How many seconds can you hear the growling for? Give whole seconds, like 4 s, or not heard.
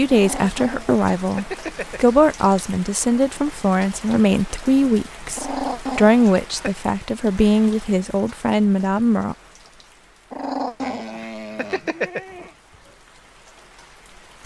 5 s.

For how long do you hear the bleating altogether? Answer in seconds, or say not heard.
2 s.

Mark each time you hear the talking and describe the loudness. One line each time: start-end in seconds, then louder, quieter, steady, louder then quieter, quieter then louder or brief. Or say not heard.
0.0-9.3 steady.